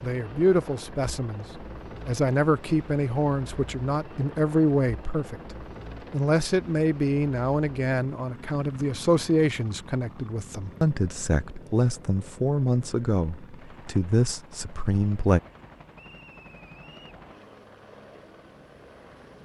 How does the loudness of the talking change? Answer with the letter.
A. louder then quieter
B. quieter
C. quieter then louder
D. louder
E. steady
E.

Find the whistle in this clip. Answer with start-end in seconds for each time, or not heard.
15.9-17.1.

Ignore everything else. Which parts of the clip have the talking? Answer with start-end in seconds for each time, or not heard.
0.0-15.4.